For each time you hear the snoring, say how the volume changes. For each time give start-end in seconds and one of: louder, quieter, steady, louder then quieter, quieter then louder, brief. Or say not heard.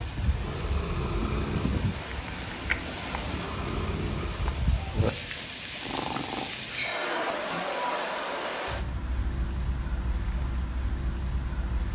0.2-7.7 steady.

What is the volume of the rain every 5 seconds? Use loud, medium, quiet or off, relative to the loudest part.
loud, loud, medium.